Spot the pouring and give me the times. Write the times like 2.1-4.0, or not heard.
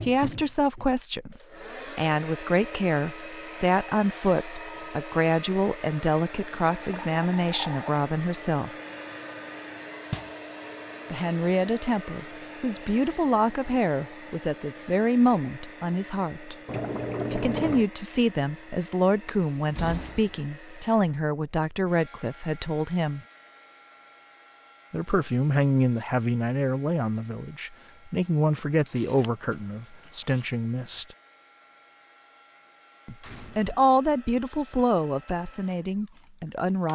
6.8-8.0, 16.6-17.9, 28.9-30.6.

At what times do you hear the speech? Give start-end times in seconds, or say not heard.
0.0-8.7, 11.1-16.6, 17.3-23.2, 24.9-31.1, 33.0-36.9.